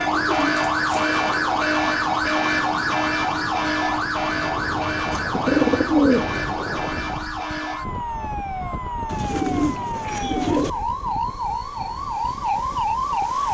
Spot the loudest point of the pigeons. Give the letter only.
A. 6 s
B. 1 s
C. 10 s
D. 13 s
A.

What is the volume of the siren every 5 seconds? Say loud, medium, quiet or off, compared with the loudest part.
loud, medium, loud.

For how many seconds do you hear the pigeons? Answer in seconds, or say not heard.
4 s.